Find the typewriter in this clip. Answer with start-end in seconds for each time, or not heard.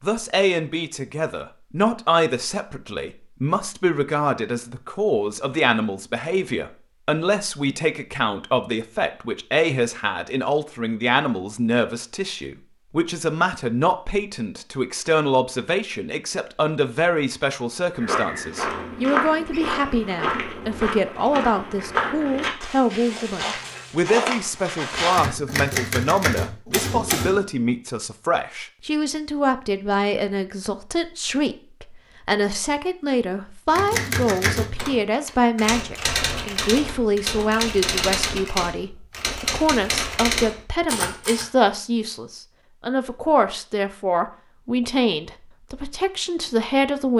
24.9-27.4, 33.7-41.5.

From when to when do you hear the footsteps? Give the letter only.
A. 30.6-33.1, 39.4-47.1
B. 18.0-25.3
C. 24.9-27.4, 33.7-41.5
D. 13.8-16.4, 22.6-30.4
B.